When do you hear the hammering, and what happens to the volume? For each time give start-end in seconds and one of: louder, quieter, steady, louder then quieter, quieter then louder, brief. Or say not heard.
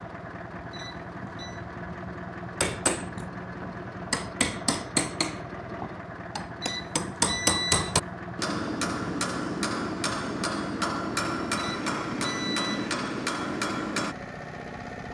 2.6-14.2 steady.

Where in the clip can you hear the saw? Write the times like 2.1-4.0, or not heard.
not heard.